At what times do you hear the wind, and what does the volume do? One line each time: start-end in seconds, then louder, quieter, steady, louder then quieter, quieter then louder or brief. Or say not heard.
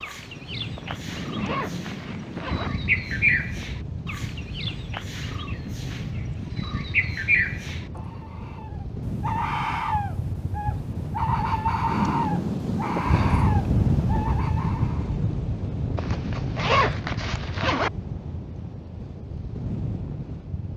0.0-20.7 louder then quieter.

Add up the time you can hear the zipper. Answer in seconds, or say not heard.
4 s.